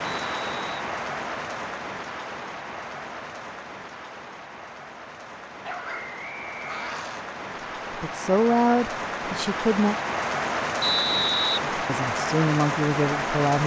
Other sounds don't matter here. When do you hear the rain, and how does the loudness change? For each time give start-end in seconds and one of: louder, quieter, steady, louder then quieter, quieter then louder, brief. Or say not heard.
0.0-13.6 quieter then louder.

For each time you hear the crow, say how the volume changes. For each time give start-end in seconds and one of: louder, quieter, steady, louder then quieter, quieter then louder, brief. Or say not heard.
not heard.